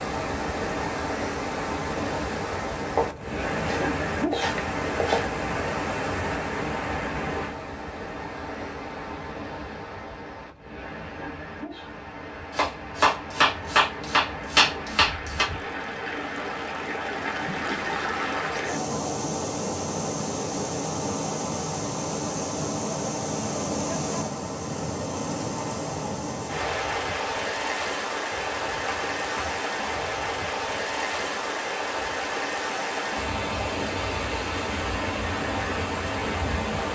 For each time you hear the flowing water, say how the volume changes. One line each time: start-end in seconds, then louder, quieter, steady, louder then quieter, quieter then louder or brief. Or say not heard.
0.0-36.9 quieter then louder.